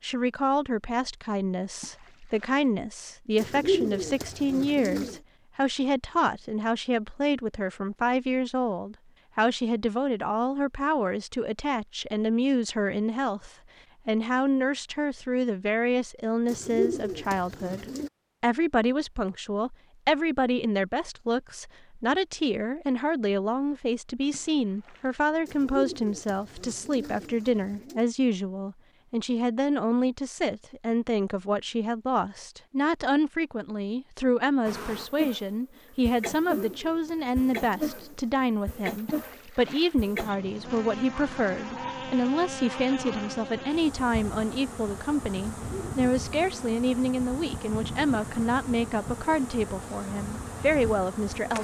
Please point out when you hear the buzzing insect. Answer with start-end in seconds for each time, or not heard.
34.6-51.5.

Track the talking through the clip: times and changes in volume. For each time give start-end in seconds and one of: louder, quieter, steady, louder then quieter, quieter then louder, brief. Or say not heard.
0.0-51.5 steady.